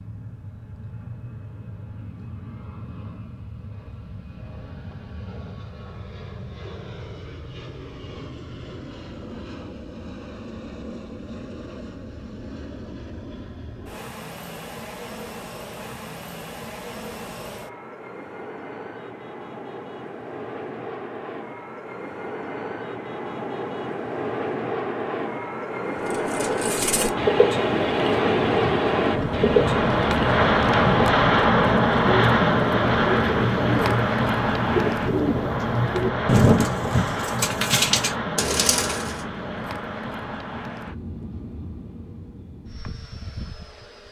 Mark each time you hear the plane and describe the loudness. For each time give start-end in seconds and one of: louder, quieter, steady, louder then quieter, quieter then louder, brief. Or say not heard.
0.0-44.0 louder then quieter.